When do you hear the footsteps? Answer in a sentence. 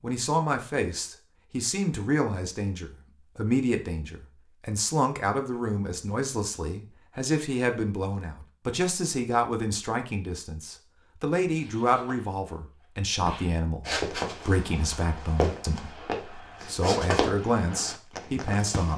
You can hear the footsteps from 13.8 to 18.9 s.